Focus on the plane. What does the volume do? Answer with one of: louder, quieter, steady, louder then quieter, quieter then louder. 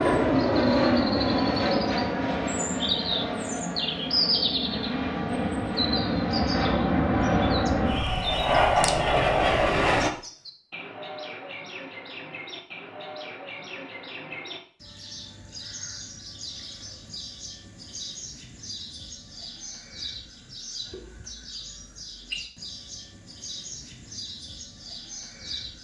quieter then louder.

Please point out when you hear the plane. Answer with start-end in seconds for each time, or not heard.
0.0-10.1.